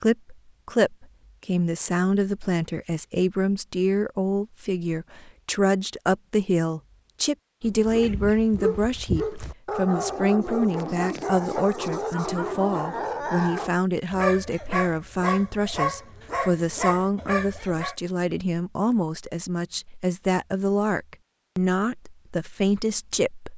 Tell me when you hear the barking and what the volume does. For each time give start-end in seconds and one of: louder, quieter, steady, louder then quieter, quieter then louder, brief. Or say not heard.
7.7-17.9 steady.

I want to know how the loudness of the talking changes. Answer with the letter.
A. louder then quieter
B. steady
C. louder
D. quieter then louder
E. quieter
B.